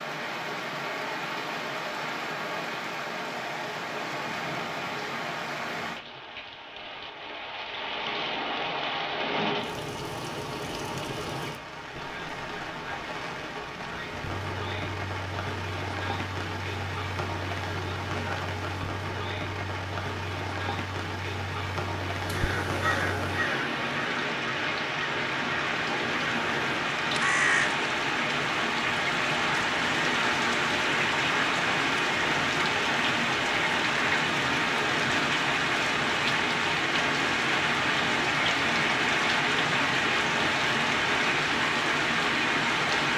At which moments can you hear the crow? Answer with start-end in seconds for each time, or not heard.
22.2-27.8.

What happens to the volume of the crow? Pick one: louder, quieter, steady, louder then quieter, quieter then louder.
quieter then louder.